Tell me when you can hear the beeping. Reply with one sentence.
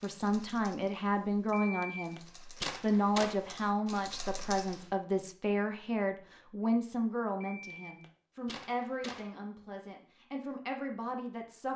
You can hear the beeping from 1.5 to 3.4 s and from 7.4 to 9.3 s.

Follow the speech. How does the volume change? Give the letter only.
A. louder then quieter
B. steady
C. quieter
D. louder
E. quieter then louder
C.